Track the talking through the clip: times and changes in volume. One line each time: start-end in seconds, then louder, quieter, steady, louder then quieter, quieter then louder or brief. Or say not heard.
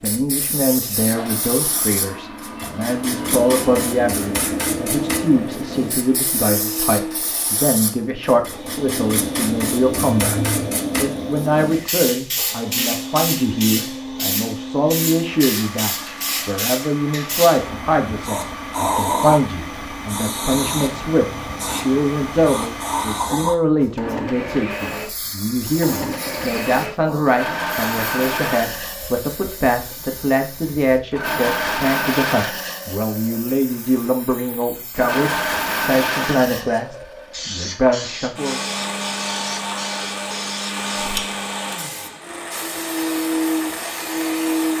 0.0-38.6 steady.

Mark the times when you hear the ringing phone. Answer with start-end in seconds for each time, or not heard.
9.9-10.7.